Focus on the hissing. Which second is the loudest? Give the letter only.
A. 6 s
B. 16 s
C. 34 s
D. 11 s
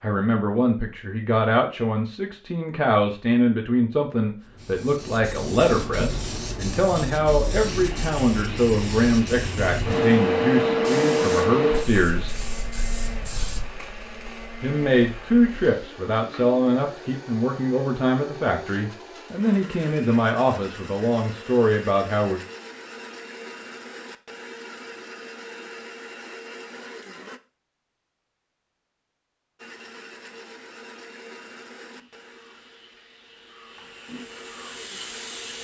D.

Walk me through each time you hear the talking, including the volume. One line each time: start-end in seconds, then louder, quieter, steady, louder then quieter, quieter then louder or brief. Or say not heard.
0.0-12.3 steady
14.6-22.4 steady.